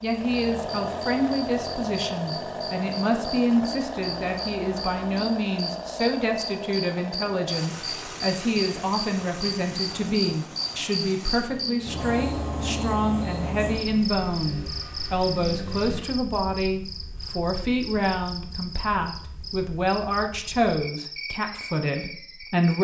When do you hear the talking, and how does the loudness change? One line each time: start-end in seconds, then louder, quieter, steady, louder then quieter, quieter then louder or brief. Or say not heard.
0.0-22.8 steady.